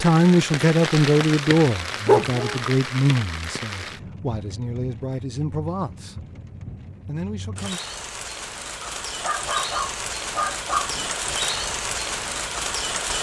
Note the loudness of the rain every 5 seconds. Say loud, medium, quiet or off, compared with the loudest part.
loud, medium, loud.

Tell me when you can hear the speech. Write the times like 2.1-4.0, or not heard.
0.0-6.2, 7.0-7.8.